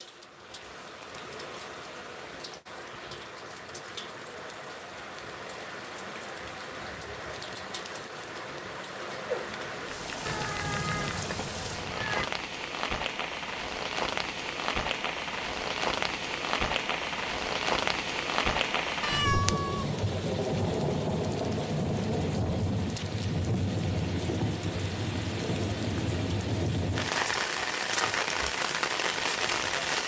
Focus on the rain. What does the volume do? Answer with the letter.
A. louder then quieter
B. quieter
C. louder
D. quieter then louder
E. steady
C.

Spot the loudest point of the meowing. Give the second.
19 s.